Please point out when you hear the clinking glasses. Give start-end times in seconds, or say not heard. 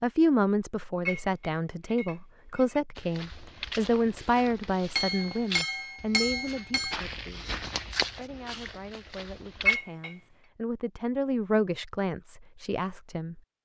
1.1-2.8, 5.0-7.0, 9.7-10.2.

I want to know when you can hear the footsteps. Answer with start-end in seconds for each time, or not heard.
3.0-9.8.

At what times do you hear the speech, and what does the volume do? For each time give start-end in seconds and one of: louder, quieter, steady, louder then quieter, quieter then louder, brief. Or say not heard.
0.0-13.4 quieter then louder.